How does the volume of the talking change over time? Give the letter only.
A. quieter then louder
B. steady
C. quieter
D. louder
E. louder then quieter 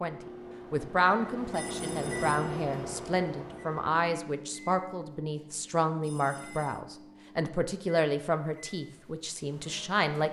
B.